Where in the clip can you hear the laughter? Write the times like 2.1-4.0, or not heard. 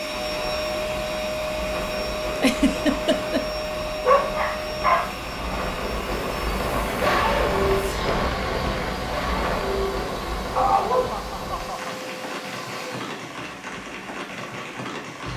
2.4-3.5, 10.7-11.9.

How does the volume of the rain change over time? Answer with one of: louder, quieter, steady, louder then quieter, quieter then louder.
louder then quieter.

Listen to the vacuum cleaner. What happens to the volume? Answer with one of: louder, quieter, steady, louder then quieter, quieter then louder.
quieter.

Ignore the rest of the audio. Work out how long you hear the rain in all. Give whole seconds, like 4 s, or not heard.
15 s.